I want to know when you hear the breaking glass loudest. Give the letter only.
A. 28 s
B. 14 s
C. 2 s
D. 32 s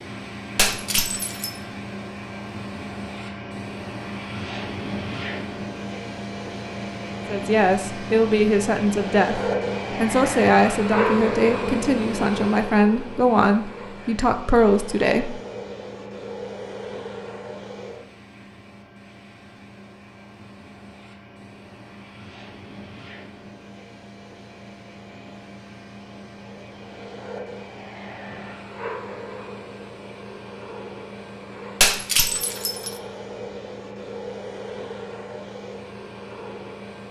D.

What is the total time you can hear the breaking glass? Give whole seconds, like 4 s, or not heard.
2 s.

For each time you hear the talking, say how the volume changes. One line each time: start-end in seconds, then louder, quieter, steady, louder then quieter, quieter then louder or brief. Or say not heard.
7.2-15.4 steady.